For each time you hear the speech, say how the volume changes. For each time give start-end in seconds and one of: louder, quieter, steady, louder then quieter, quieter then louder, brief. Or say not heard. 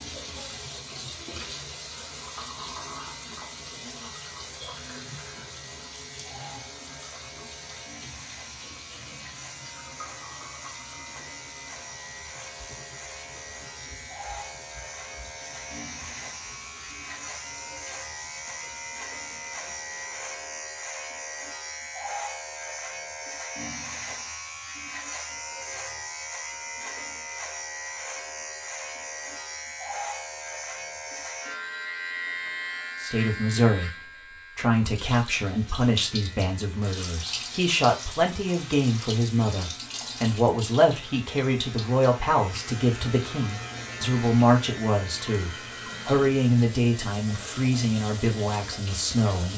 33.0-49.5 steady.